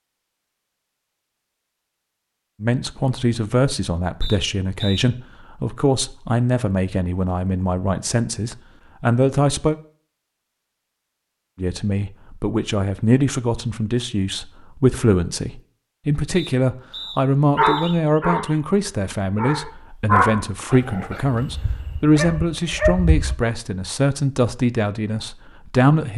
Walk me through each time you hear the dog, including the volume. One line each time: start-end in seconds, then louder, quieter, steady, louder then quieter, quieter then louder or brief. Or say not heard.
17.6-18.6 brief
19.4-23.4 quieter then louder.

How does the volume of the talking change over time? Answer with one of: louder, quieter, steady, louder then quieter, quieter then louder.
steady.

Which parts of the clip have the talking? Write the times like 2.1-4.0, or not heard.
2.6-9.8, 11.6-26.1.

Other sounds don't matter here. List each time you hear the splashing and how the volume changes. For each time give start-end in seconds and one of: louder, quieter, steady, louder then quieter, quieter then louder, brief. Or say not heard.
not heard.